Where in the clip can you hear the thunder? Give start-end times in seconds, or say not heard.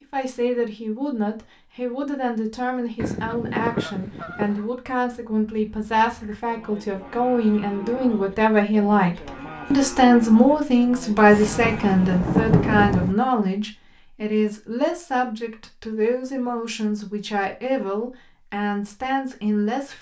11.3-13.2.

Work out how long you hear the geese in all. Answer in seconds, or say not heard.
2 s.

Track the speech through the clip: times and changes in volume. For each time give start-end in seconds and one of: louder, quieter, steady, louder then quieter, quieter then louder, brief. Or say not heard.
0.1-19.9 louder then quieter.